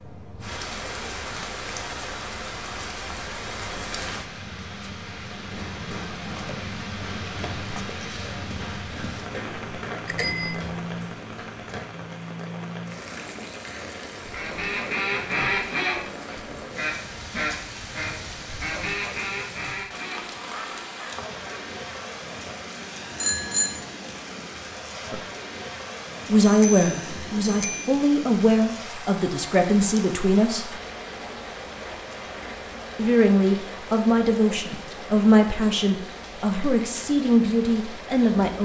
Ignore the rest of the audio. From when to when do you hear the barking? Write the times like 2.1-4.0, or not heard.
not heard.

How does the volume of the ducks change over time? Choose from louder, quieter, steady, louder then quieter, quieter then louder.
quieter.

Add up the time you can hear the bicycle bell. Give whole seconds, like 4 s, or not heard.
3 s.